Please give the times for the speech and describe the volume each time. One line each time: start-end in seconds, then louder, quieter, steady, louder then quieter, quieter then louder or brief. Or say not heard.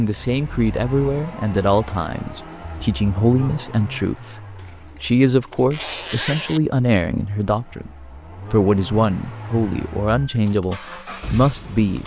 0.0-12.0 steady.